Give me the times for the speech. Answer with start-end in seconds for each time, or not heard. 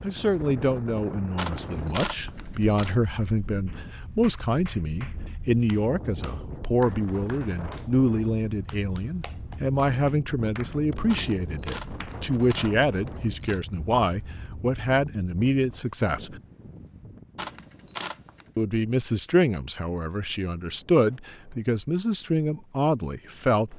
0.0-16.4, 18.6-23.7.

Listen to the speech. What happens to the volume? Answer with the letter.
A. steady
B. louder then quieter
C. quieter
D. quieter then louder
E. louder
A.